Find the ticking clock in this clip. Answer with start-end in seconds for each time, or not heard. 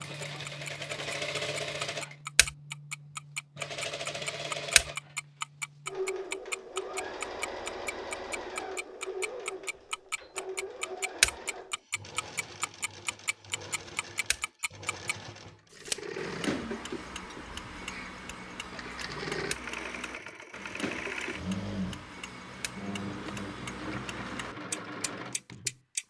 0.0-26.0.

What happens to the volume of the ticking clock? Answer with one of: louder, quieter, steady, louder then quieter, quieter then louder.
quieter.